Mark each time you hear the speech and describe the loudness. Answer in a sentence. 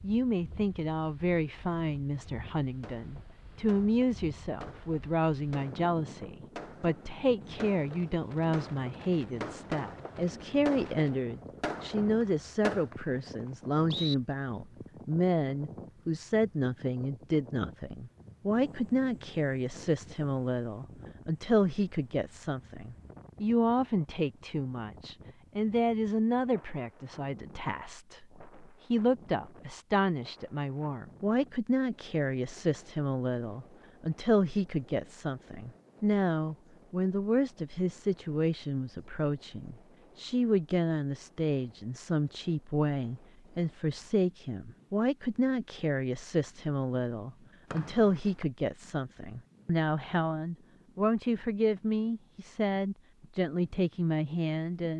You can hear the speech from 0.0 to 54.9 s, at a steady volume.